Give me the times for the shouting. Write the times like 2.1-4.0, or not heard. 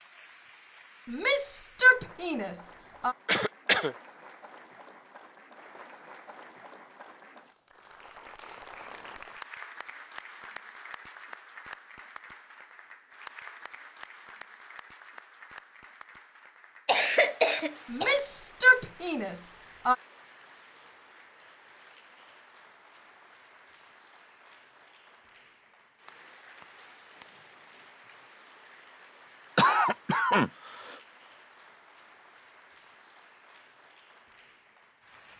1.1-3.1, 17.9-19.9.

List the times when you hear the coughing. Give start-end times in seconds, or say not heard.
3.2-4.0, 16.9-18.2, 29.6-30.9.